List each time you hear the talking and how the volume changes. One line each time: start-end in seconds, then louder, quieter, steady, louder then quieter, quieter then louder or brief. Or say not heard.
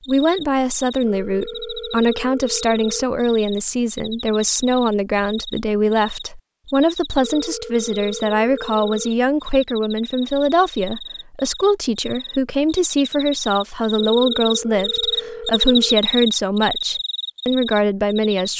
0.1-18.5 steady.